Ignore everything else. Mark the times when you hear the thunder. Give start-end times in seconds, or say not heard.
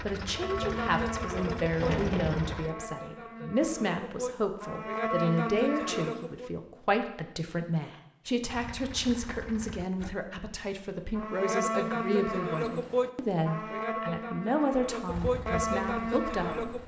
1.8-2.6.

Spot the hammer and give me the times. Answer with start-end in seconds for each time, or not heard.
not heard.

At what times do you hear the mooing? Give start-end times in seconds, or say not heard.
0.3-6.5, 11.2-16.8.